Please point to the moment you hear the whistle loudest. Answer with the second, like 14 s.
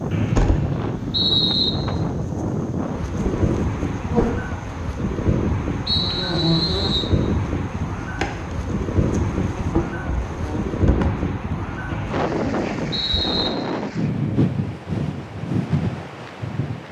1 s.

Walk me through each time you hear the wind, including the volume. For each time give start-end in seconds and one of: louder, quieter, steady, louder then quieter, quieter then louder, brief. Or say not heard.
0.0-16.8 steady.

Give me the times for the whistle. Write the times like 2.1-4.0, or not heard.
0.1-1.7, 5.8-7.1, 11.8-13.5.